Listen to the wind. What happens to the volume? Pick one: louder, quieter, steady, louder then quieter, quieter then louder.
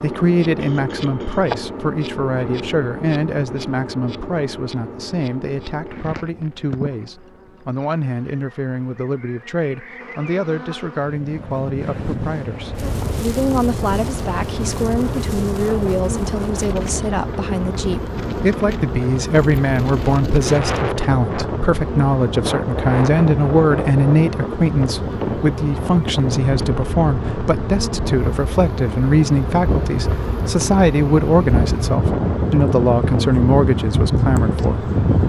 louder.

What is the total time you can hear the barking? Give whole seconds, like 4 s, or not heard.
not heard.